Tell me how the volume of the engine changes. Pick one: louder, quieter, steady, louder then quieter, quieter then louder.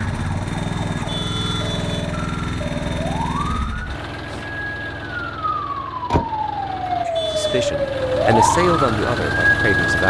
quieter then louder.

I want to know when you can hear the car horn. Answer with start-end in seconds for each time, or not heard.
0.9-2.1, 7.0-7.7.